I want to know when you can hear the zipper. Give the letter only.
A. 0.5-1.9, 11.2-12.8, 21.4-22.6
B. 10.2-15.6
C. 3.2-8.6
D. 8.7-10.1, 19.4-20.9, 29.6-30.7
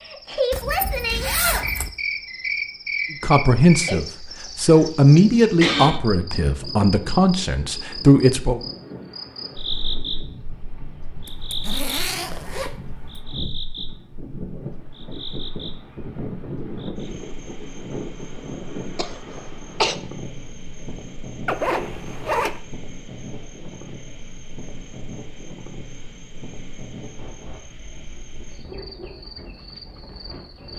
A.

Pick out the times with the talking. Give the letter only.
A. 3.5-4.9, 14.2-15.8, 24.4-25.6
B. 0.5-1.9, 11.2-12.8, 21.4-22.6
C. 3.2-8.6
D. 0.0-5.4
C.